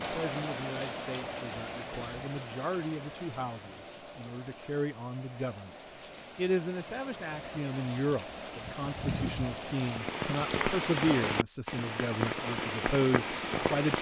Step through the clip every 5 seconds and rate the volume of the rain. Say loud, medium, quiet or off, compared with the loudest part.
medium, medium, loud.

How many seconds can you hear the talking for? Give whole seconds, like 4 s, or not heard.
14 s.